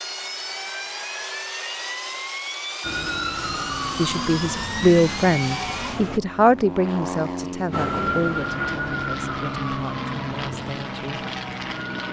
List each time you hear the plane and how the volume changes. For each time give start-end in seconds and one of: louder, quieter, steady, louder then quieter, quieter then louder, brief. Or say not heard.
0.0-12.0 steady.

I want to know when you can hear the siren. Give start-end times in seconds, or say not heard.
2.8-6.2, 7.7-11.9.